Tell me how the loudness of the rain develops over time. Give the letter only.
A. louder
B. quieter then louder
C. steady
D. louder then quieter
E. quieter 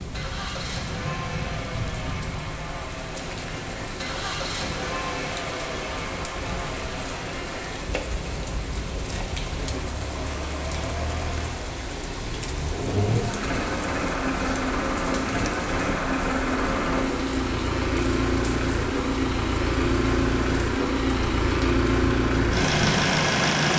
C.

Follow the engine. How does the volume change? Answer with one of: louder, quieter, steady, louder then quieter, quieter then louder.
louder.